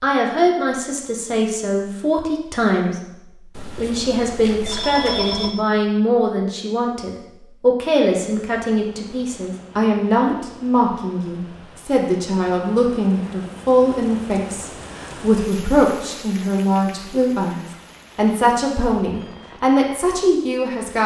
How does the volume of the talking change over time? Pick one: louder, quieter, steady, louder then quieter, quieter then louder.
steady.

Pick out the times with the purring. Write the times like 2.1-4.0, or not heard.
not heard.